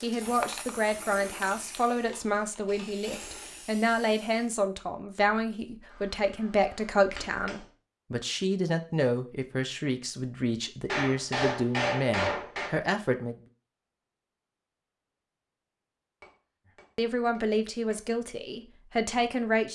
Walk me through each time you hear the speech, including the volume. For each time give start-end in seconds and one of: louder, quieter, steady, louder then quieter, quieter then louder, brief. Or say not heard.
0.0-13.4 steady
16.9-19.7 brief.